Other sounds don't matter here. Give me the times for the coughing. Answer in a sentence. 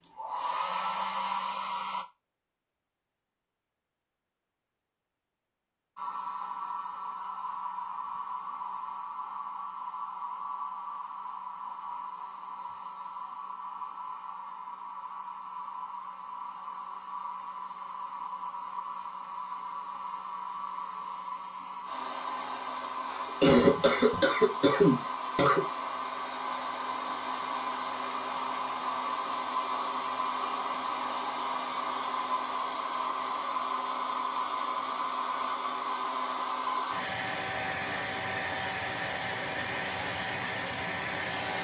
The coughing can be heard from 23.1 to 25.6 s.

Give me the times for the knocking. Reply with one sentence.
The knocking can't be heard in this clip.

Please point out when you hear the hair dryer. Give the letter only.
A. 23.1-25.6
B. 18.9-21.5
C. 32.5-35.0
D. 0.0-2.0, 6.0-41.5
D.